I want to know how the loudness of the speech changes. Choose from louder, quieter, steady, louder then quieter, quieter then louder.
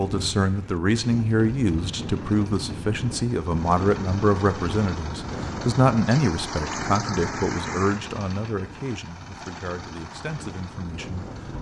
quieter.